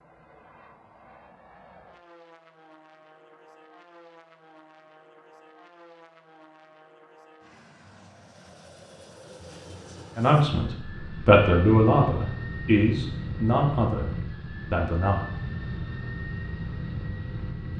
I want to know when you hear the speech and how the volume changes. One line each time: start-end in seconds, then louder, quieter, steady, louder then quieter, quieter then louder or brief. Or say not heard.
10.2-15.2 quieter.